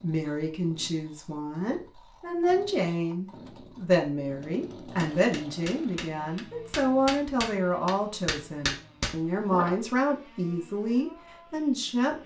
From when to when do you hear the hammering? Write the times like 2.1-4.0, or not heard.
5.0-9.8.